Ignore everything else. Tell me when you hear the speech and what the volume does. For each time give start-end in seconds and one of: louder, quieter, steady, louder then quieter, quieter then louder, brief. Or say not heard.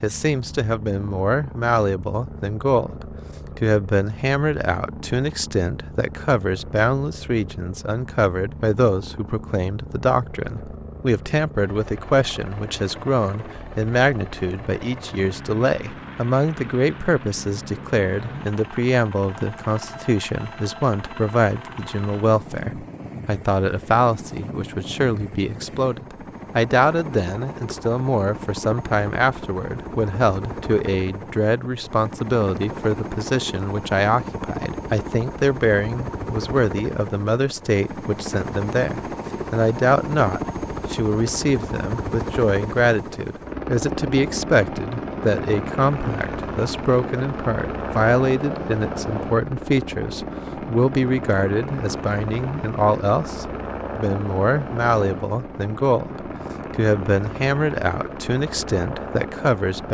0.0-59.9 steady.